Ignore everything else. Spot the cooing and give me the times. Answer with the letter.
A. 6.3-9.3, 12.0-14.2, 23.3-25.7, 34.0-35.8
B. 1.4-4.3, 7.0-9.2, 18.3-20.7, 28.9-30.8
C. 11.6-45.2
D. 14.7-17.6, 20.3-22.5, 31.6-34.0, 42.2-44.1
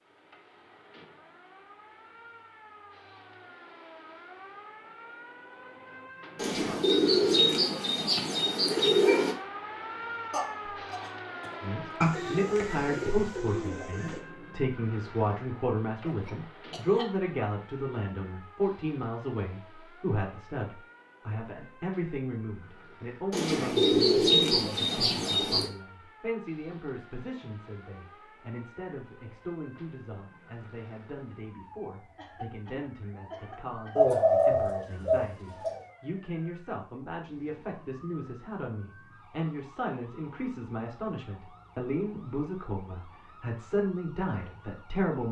A.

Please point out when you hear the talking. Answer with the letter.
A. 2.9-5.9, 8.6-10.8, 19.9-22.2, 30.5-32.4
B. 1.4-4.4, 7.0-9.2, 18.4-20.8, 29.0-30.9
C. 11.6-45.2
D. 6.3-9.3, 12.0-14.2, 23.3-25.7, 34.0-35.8
C.